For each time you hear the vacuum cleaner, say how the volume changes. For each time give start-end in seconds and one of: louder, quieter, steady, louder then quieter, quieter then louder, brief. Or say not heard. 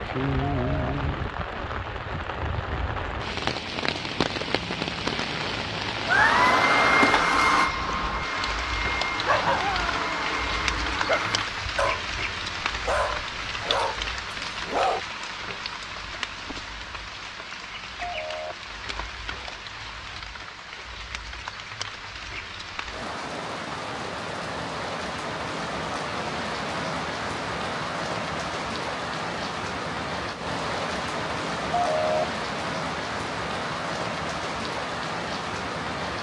6.0-11.5 quieter.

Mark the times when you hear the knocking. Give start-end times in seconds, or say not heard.
not heard.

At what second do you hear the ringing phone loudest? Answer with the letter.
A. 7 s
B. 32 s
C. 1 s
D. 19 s
B.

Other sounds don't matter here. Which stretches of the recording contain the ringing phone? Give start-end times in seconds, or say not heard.
0.5-0.9, 18.0-18.6, 31.7-32.2.